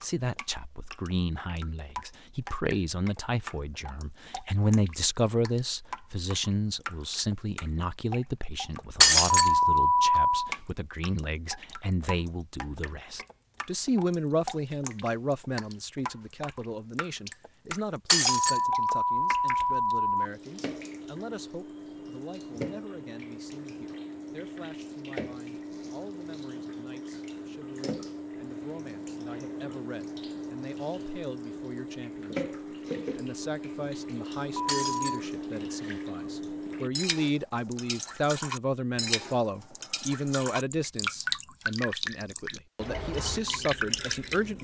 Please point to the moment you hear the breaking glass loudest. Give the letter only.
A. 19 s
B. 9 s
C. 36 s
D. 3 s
B.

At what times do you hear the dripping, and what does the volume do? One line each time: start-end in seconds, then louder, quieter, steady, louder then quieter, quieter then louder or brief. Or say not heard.
0.0-44.5 louder.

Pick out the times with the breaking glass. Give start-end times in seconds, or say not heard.
9.0-9.5, 18.1-18.6, 34.6-35.2.